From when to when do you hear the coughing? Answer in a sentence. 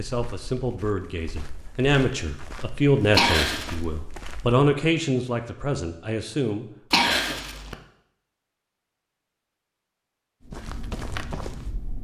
You can hear the coughing from 3.1 to 3.8 s and from 6.9 to 7.8 s.